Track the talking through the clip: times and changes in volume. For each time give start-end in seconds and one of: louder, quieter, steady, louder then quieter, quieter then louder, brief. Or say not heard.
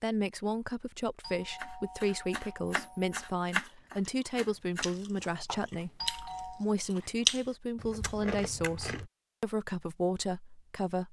0.0-11.0 steady.